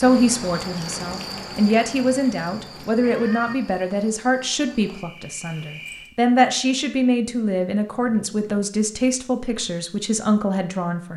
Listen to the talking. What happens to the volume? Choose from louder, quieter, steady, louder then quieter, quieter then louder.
steady.